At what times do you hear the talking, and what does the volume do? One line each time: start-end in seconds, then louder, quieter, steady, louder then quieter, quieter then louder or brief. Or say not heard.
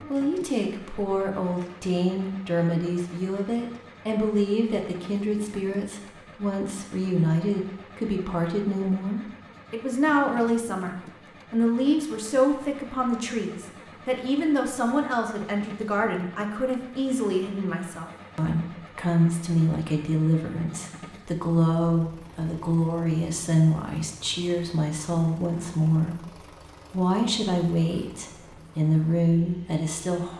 0.1-30.3 steady.